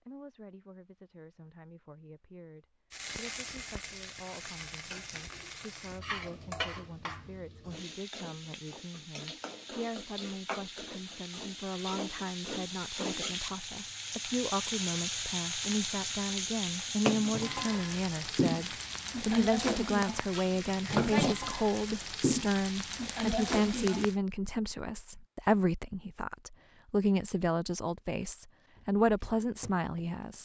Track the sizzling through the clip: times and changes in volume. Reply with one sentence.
You can hear the sizzling from 2.9 to 24.1 s, getting louder.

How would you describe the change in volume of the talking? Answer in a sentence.
The volume of the talking goes up.